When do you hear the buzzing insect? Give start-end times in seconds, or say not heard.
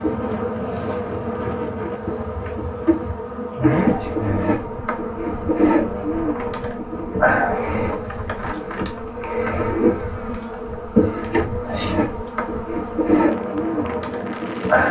0.0-14.8.